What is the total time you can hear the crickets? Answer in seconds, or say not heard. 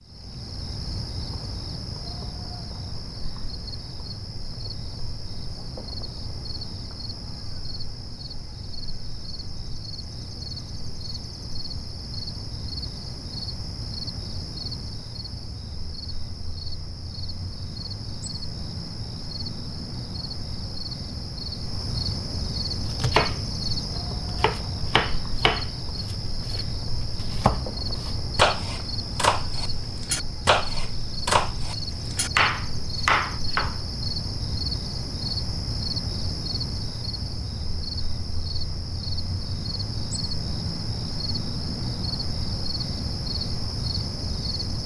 45 s.